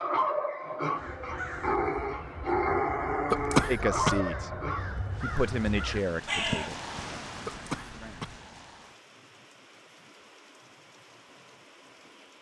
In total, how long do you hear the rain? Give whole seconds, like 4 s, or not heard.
7 s.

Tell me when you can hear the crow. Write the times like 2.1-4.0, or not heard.
0.9-7.0.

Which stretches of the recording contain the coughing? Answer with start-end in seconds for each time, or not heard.
3.3-4.2, 7.5-8.4.